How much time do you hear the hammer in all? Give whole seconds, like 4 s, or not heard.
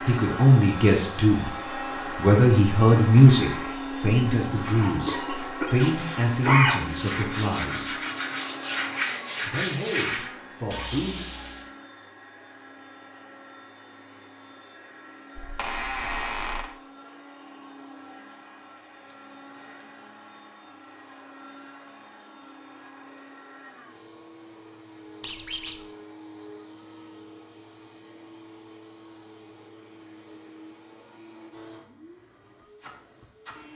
not heard.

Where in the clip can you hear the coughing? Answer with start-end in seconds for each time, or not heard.
4.8-6.8.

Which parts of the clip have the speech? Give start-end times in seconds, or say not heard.
0.0-8.0, 9.4-11.2.